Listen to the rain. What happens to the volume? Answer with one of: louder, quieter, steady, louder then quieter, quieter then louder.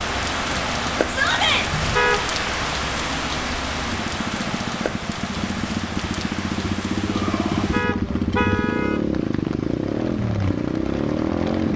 quieter.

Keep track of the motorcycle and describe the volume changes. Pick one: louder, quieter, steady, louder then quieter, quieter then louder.
louder.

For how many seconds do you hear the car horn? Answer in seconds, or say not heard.
2 s.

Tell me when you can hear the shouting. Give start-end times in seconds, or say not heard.
1.1-1.6, 7.0-7.7.